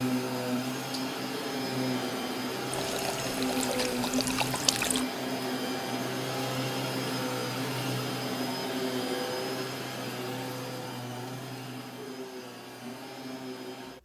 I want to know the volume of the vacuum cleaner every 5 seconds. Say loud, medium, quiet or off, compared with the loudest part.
loud, loud, medium.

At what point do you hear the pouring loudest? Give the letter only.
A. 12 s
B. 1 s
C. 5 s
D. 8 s
C.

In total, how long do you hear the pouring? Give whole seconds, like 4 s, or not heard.
2 s.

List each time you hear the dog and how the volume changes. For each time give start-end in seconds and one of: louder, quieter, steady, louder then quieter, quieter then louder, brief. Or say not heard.
not heard.